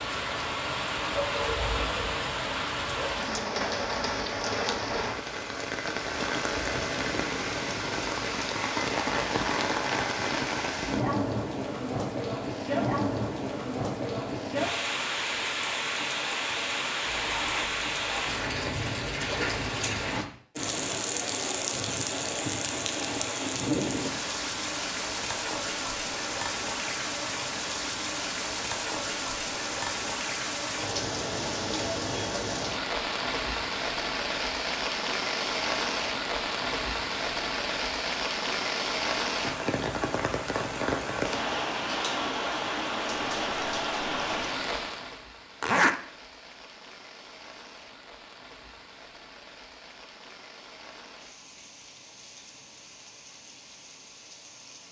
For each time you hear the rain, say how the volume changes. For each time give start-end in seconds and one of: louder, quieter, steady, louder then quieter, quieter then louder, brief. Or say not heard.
0.0-54.8 quieter.